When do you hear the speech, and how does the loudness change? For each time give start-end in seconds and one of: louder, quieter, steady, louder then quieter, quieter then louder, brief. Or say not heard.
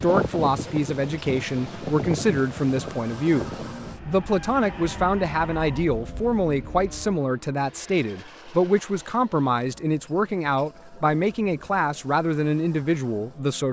0.0-13.6 steady.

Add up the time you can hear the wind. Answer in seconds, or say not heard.
7 s.